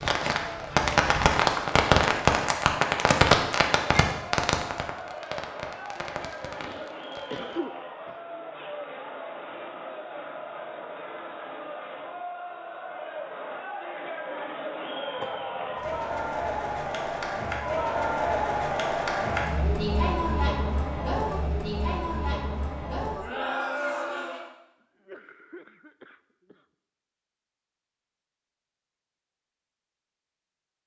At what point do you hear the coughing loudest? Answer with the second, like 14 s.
7 s.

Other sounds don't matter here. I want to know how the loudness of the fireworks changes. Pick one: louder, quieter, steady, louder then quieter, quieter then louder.
quieter.